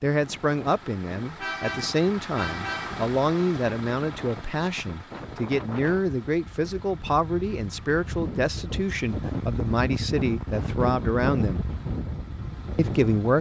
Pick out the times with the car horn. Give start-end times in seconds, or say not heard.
1.4-3.0.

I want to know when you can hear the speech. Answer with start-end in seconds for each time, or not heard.
0.0-11.7, 12.8-13.3.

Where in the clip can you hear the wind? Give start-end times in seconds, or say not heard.
0.1-13.3.